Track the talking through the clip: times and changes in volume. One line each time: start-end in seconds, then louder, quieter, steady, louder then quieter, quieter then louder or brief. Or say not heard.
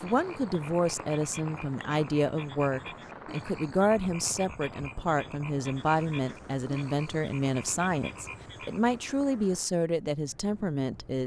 0.0-11.2 steady.